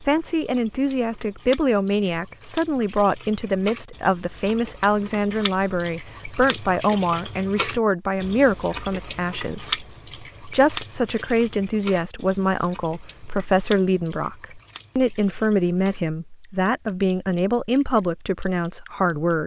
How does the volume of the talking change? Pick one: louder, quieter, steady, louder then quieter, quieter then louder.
steady.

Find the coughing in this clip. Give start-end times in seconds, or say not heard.
not heard.